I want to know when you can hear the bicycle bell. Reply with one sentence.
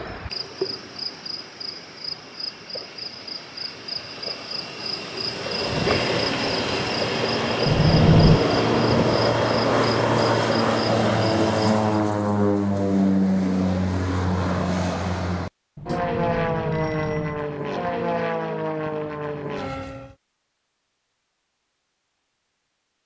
The bicycle bell can be heard from 7.7 to 8.4 s and from 15.8 to 17.5 s.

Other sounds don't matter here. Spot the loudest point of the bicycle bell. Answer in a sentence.
The loudest moment of the bicycle bell is at 8 seconds.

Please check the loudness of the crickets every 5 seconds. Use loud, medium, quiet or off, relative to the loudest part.
medium, loud, medium, off, off.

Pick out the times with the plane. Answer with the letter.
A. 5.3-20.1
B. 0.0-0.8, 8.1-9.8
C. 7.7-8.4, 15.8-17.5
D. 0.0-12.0
A.